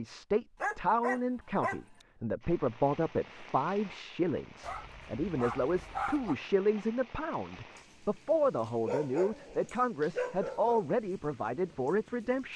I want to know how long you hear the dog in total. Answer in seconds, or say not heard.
5 s.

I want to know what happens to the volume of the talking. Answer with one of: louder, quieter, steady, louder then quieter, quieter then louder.
steady.